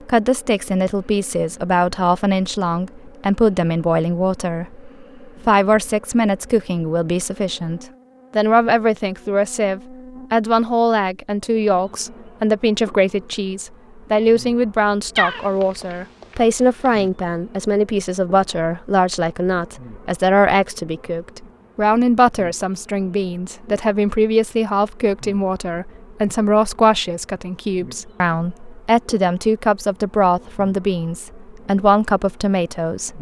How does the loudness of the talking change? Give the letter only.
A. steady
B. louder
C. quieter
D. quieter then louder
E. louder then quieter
A.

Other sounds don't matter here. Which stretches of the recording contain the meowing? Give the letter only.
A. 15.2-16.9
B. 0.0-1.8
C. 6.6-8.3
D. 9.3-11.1
A.